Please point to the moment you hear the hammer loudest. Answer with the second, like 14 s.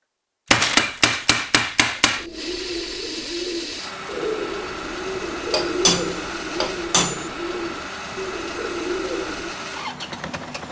1 s.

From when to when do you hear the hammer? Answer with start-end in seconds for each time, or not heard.
0.5-2.2, 5.5-7.2.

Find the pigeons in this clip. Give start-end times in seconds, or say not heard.
2.1-9.6.